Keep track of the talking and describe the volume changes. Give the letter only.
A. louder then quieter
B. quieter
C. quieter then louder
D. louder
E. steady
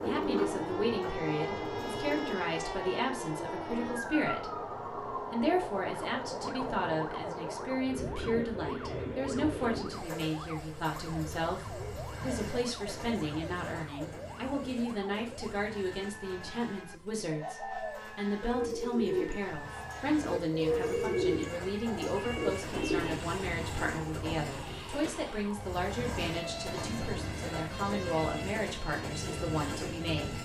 E.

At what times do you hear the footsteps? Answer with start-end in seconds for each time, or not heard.
not heard.